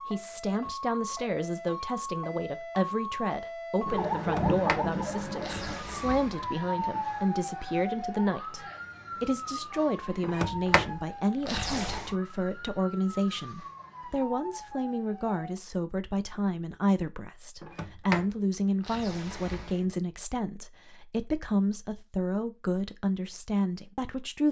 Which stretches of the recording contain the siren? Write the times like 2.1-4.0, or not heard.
0.0-15.6.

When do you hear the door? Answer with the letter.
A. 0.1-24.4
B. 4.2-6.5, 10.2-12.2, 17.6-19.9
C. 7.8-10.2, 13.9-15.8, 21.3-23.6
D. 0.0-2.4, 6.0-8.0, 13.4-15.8
B.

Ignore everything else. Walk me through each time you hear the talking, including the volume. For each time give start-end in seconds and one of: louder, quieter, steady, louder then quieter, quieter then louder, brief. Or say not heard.
0.1-24.4 steady.